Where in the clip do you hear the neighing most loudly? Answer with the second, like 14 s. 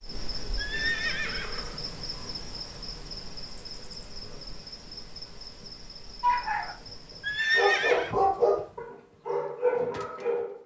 8 s.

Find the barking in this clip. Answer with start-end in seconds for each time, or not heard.
6.2-10.6.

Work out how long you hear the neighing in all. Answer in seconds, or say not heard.
2 s.